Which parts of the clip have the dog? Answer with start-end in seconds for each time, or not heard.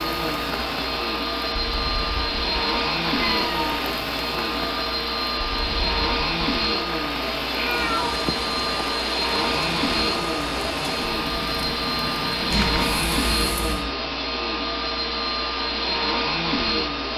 not heard.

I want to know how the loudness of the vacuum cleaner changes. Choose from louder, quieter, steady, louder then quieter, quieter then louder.
steady.